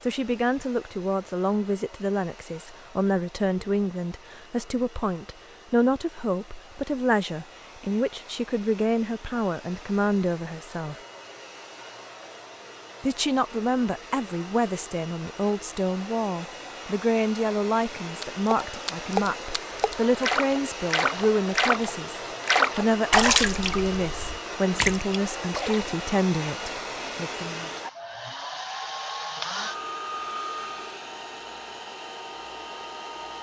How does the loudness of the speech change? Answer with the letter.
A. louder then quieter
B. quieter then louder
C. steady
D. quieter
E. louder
C.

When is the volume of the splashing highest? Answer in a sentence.
The volume of the splashing peaks at 23 seconds.